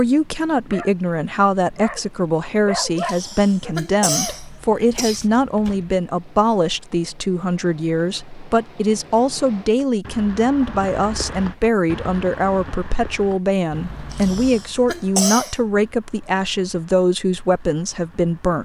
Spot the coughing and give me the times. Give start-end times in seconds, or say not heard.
3.0-5.2, 14.1-15.6.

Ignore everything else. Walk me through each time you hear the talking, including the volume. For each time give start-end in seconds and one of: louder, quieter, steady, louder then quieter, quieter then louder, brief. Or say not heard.
0.0-18.6 steady.